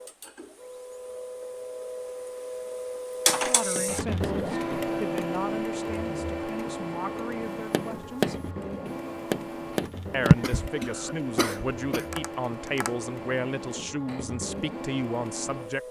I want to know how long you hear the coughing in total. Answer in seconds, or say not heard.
2 s.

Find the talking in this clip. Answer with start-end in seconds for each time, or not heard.
3.4-8.5, 10.1-15.8.